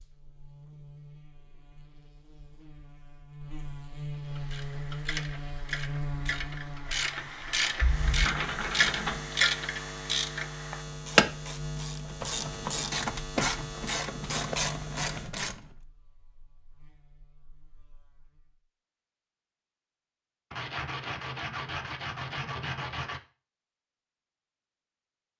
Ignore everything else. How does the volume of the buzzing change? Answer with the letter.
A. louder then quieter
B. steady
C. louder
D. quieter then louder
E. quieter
A.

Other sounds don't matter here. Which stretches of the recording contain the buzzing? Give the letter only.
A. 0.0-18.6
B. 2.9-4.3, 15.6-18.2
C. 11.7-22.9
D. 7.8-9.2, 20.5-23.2
A.